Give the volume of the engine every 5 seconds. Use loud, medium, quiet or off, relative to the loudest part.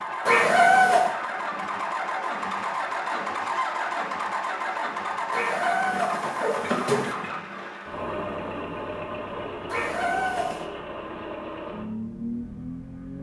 loud, loud, medium.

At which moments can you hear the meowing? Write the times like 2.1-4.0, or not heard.
0.2-1.1, 5.3-7.2, 9.7-10.7.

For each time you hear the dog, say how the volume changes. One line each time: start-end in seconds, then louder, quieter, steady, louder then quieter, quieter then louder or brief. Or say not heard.
not heard.